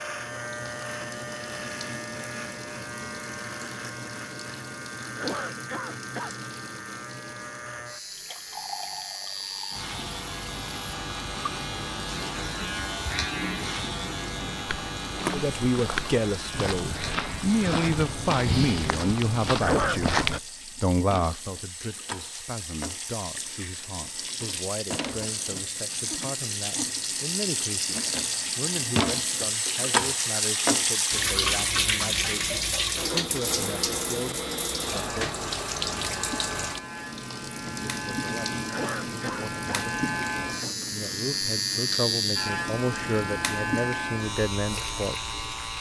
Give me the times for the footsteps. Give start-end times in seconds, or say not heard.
14.7-20.4.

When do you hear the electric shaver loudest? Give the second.
42 s.